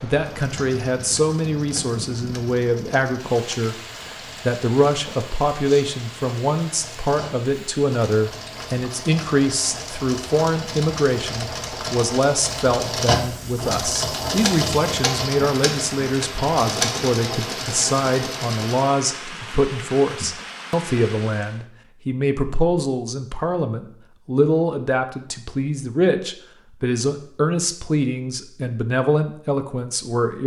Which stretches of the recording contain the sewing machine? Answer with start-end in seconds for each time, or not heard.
0.2-18.9.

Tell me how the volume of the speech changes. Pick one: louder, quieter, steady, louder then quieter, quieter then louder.
steady.